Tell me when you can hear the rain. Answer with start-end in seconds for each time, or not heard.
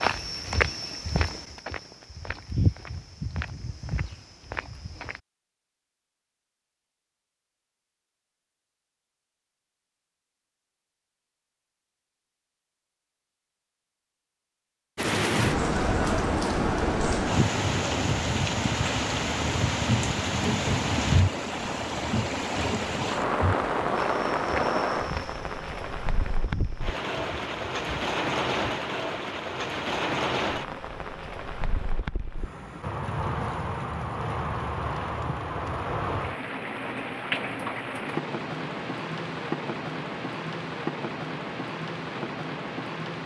14.9-43.2.